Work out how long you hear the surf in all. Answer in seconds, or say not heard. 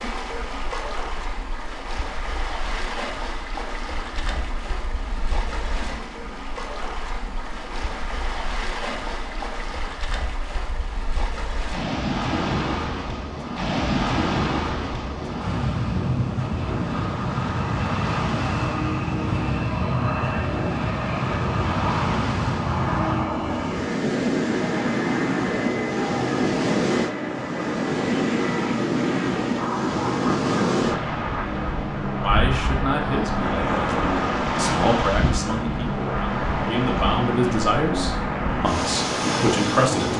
40 s.